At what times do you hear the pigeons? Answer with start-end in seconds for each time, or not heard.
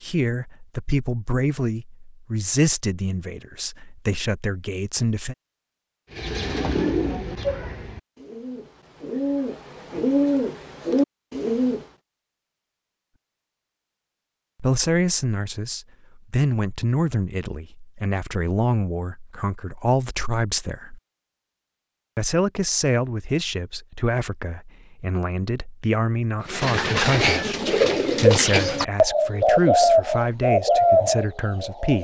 6.1-11.8, 26.4-31.9.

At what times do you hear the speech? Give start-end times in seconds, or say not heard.
0.0-5.3, 14.6-21.0, 22.1-31.9.